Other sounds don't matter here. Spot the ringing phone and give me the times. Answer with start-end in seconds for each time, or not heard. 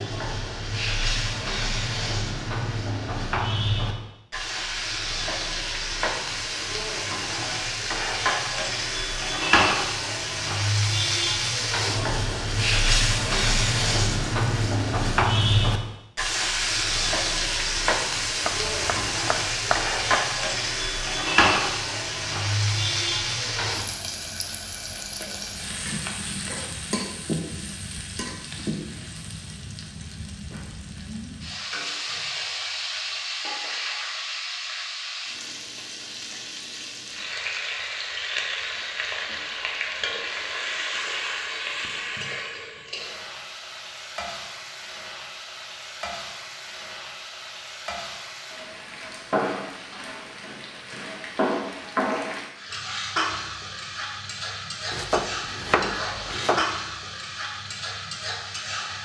not heard.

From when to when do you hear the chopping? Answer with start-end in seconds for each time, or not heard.
18.4-20.2, 54.9-56.6.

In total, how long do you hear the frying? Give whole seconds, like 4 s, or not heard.
59 s.